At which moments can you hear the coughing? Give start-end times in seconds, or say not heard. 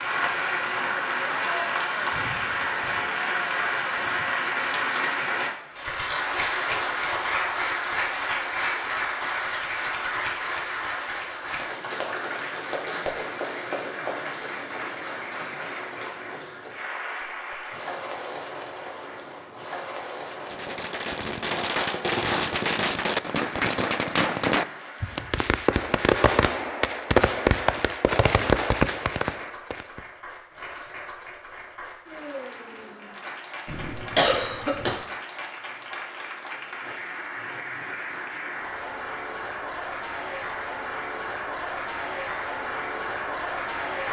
33.6-35.0.